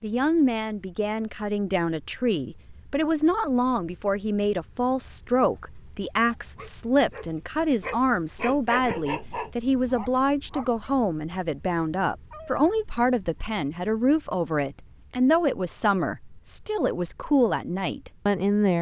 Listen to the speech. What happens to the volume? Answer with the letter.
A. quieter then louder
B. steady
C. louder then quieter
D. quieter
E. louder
B.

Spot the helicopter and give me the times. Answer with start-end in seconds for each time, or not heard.
not heard.